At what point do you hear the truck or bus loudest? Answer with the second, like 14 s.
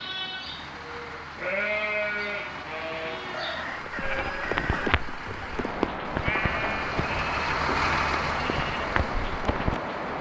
8 s.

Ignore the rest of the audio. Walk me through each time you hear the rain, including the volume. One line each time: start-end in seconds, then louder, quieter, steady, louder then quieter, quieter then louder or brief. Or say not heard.
0.0-10.1 louder.